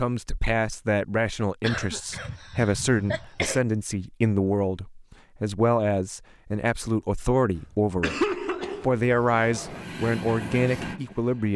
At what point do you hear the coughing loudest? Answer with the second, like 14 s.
8 s.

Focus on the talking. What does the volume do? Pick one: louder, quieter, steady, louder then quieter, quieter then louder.
steady.